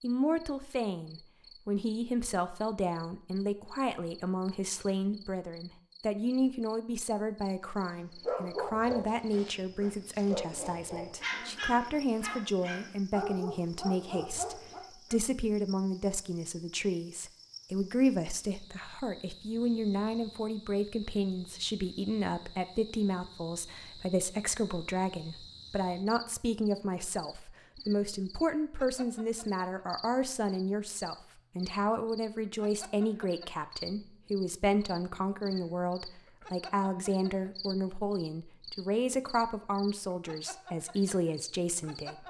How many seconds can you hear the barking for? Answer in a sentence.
You can hear the barking for 7 seconds altogether.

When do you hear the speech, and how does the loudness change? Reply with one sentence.
You can hear the speech from 0.0 to 42.2 s, at a steady volume.